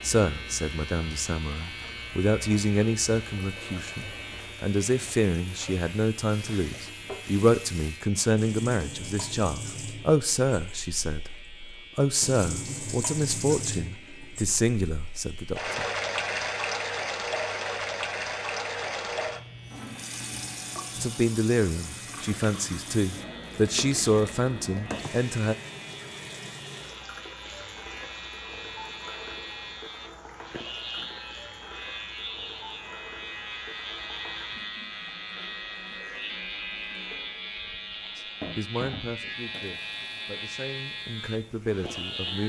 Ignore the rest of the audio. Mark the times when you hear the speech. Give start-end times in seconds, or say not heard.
0.0-15.8, 20.9-25.6, 38.1-42.4.